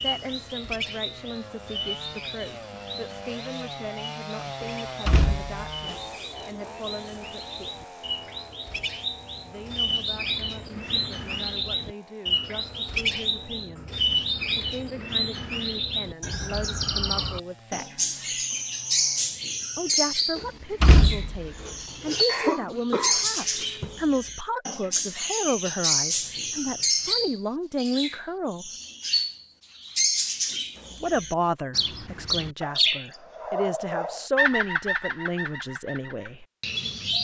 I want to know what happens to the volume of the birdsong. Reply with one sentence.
The loudness of the birdsong goes up.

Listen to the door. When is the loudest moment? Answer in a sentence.
The volume of the door peaks at 21 seconds.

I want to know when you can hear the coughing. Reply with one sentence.
You can hear the coughing from 22.2 to 24.0 s.